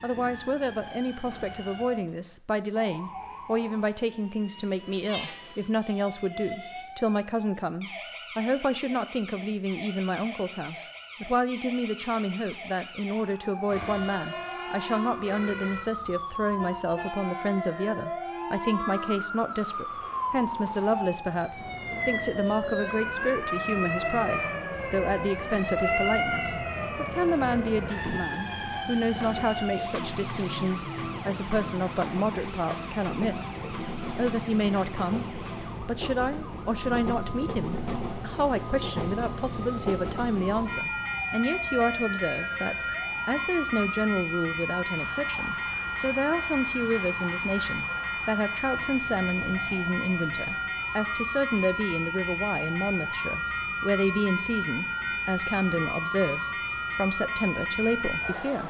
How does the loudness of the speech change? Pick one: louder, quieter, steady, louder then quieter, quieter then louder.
steady.